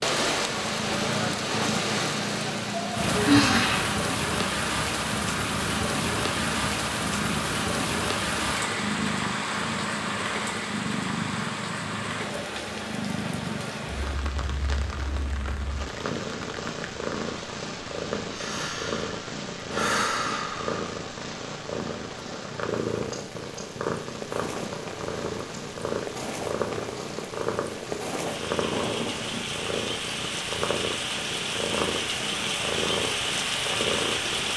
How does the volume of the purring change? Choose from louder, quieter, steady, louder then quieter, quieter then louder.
steady.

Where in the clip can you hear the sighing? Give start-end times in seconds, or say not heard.
2.7-4.0, 18.3-20.9, 28.6-29.6.